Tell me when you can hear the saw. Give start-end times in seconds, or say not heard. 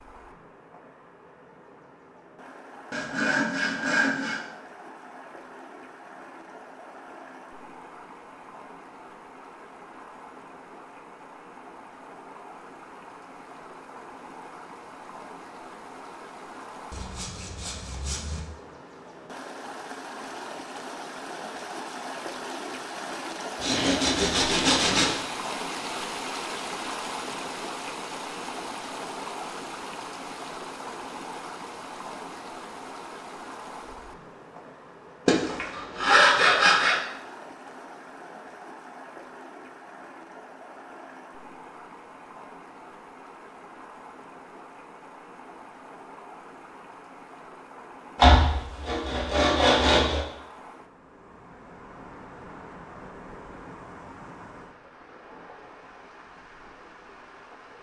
2.9-4.5, 16.9-18.4, 23.6-25.2, 35.2-37.0, 48.1-50.2.